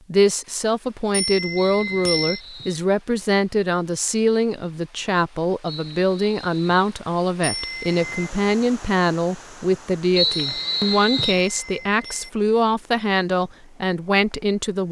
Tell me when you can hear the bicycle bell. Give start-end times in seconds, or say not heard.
1.1-2.4, 7.4-8.3, 10.3-12.3.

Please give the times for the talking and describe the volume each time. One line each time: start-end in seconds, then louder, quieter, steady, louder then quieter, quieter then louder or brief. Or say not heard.
0.1-14.8 steady.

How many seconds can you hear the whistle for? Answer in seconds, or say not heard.
4 s.